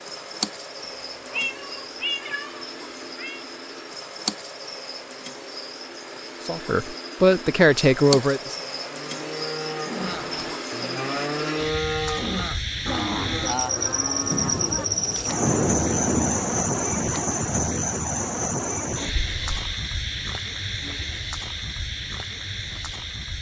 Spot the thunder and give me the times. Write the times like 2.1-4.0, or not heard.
14.3-17.1.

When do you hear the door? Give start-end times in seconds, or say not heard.
not heard.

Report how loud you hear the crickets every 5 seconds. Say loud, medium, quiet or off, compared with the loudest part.
medium, medium, loud, loud, medium.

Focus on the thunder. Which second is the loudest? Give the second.
16 s.